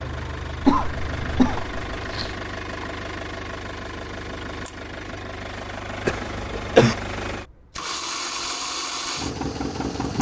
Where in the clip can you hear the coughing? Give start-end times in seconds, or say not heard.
0.6-2.4, 6.0-7.0.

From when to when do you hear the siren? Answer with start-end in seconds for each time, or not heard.
not heard.